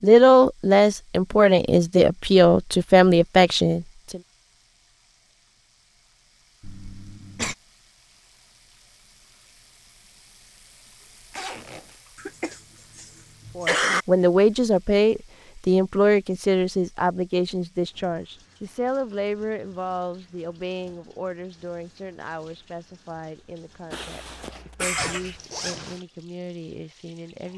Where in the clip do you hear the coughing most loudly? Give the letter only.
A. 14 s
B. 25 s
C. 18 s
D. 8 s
A.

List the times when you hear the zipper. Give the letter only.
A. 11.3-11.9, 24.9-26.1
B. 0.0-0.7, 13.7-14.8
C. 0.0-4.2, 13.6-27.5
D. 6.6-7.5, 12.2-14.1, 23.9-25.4
A.